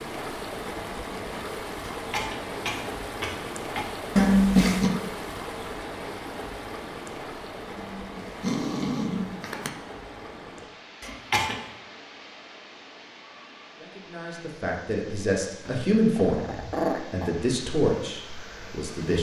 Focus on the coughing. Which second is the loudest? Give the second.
11 s.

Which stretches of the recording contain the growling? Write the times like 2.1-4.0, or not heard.
4.2-4.9, 7.8-9.7, 15.7-17.4.